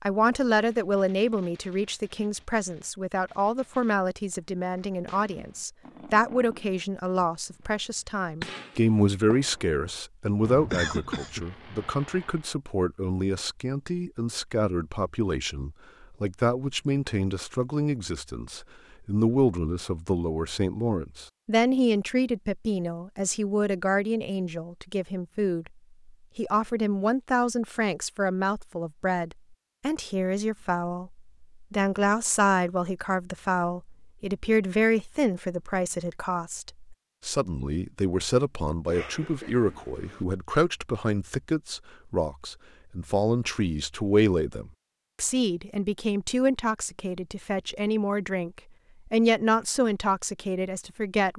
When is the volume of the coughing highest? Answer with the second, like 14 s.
11 s.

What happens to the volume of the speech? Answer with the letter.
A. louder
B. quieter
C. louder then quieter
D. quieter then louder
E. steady
E.